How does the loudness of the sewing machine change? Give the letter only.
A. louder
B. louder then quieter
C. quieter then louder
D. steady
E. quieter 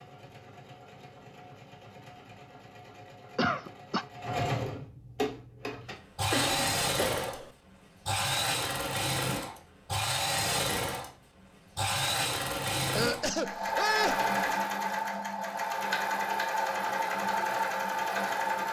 A.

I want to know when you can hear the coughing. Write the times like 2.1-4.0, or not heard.
3.4-4.0, 6.3-7.5, 12.9-14.3.